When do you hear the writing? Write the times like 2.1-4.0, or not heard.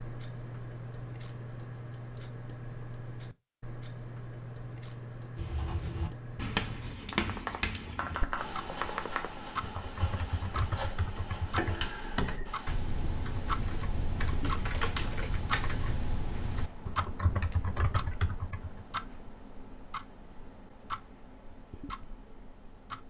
5.3-12.8.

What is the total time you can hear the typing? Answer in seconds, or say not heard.
12 s.